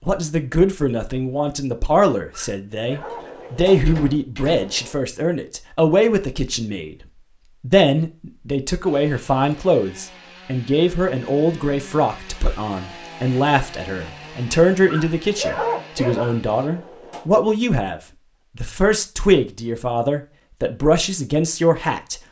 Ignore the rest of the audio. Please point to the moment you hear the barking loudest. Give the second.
16 s.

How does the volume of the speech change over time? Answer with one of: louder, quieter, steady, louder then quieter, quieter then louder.
steady.